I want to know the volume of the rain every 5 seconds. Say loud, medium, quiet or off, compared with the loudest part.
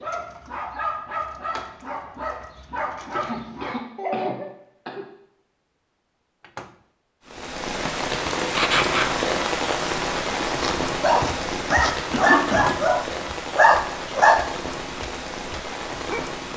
off, loud, loud, medium.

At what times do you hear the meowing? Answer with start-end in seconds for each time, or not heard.
not heard.